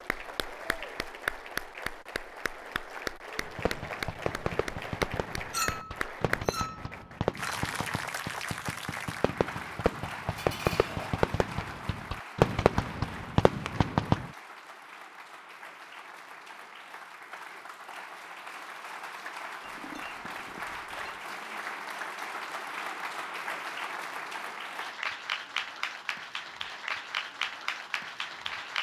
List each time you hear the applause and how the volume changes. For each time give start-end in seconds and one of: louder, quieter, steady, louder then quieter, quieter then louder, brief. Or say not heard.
0.0-28.7 quieter then louder.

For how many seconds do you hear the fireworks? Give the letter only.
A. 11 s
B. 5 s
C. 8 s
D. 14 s
A.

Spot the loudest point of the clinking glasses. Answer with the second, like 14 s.
6 s.